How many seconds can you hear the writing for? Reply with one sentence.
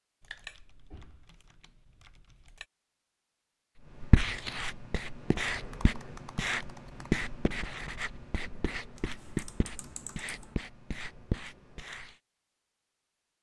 You can hear the writing for 8 seconds altogether.